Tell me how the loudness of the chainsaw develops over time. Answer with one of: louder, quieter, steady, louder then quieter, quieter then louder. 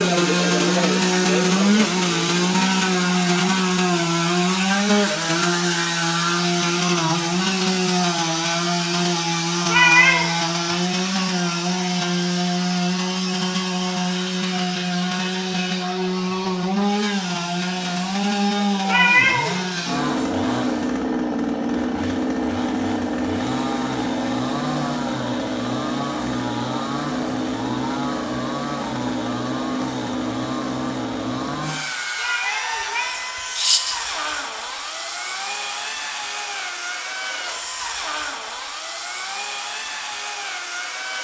quieter.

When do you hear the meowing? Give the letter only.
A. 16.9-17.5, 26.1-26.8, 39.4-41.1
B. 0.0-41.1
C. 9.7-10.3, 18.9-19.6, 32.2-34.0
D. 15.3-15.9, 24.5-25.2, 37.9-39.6
C.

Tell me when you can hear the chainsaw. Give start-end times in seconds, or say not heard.
0.0-41.1.